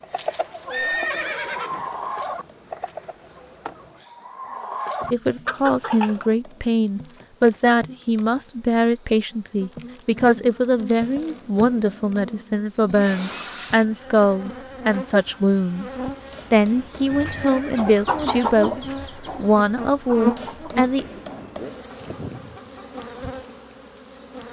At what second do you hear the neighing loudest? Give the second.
1 s.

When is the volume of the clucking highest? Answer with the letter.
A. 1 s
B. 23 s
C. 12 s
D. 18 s
D.